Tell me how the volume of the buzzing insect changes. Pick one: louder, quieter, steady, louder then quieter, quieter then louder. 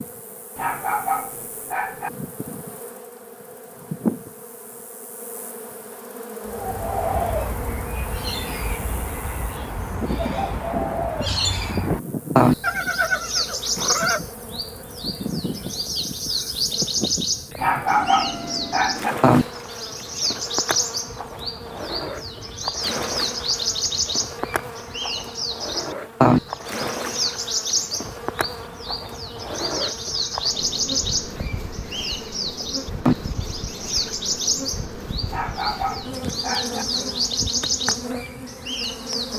steady.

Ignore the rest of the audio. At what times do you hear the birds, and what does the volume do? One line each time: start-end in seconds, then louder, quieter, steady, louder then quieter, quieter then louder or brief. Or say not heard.
6.5-39.3 steady.